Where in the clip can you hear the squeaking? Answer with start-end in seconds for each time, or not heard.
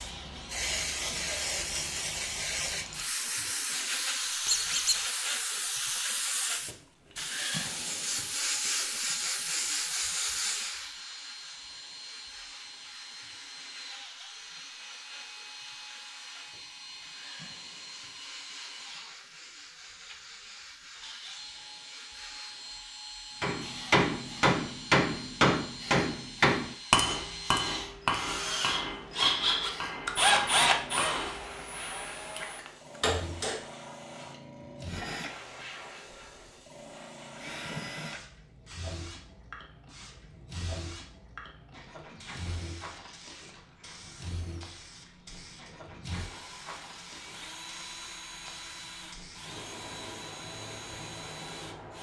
4.5-5.0.